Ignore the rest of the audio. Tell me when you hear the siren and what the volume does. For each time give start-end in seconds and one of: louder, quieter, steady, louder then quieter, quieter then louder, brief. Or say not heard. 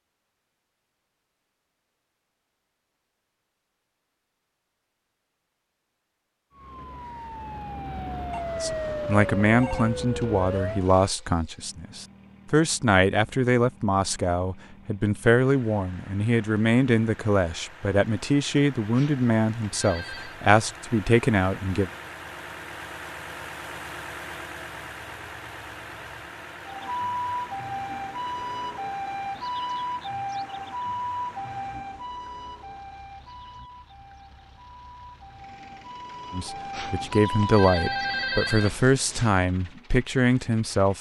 6.5-10.9 louder
26.6-38.5 quieter then louder.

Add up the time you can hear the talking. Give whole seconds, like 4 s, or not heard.
18 s.